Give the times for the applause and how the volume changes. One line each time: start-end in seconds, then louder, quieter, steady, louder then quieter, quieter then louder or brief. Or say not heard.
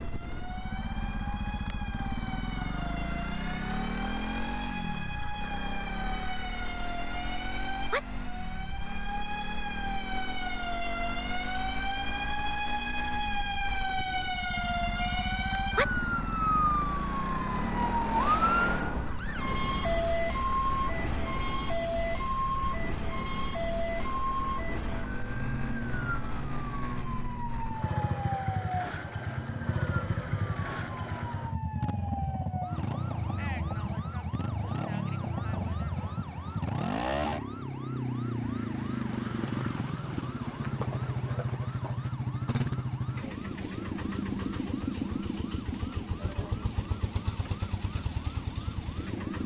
not heard.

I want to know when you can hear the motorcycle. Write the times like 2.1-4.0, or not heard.
0.0-49.4.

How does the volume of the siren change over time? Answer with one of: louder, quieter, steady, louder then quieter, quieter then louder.
louder then quieter.